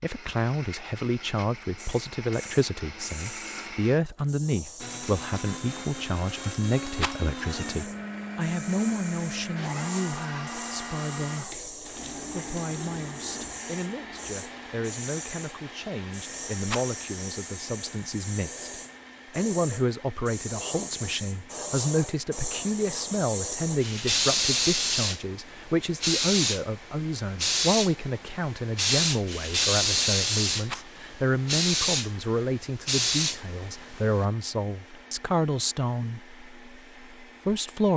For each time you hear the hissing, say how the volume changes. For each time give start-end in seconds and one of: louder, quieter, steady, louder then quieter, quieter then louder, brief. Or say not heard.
1.8-34.2 louder.